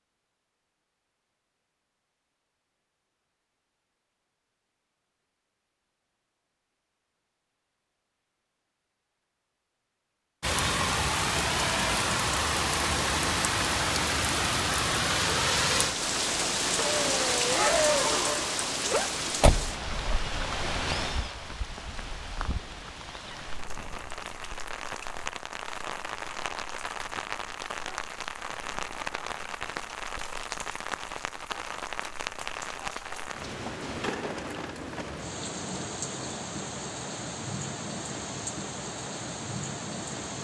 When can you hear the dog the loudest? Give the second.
18 s.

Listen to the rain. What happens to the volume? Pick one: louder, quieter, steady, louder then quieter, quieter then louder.
quieter.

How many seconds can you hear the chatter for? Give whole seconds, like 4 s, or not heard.
not heard.